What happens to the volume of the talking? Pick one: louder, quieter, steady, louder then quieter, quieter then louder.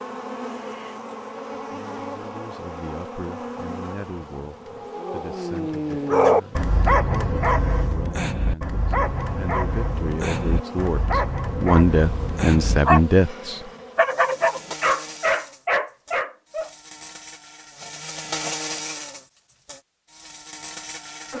louder.